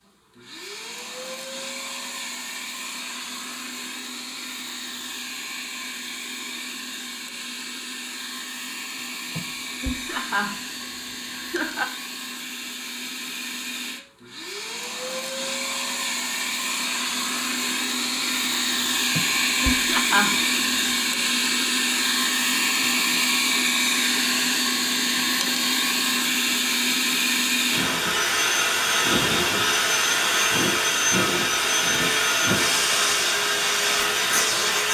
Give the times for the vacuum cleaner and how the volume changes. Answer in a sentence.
You can hear the vacuum cleaner from 0.0 to 34.8 s, getting louder.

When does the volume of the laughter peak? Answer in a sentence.
The volume of the laughter peaks at 20 seconds.